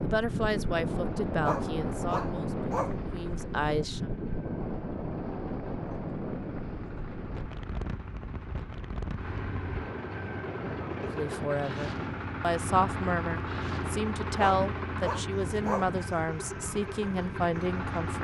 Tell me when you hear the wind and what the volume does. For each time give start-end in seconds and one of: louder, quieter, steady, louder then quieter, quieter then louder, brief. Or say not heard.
0.0-18.1 quieter.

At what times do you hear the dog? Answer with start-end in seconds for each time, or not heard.
1.4-3.0, 14.3-15.9.